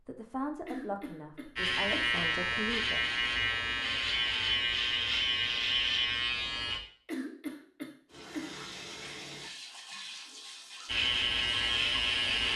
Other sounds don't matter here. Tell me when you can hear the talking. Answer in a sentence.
You can hear the talking from 0.1 to 3.0 s.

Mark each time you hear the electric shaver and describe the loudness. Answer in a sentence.
You can hear the electric shaver from 1.6 to 6.8 s, at a steady volume; and briefly from 10.8 to 12.5 s.